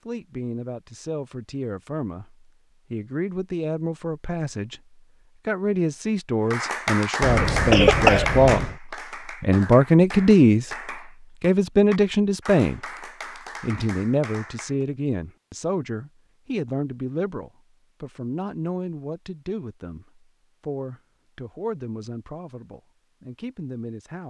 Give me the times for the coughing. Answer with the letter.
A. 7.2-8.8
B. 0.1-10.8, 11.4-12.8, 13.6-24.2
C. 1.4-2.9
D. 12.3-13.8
A.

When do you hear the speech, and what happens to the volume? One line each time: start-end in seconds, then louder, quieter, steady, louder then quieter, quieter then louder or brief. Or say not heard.
0.1-10.8 louder
11.4-12.8 brief
13.6-24.2 quieter.